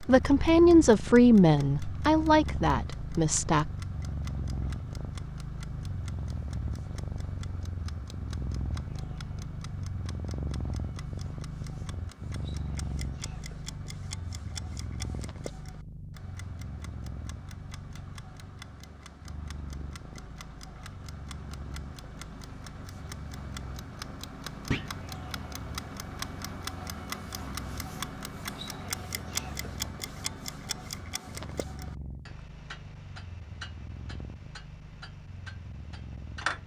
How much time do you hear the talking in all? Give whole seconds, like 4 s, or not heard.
4 s.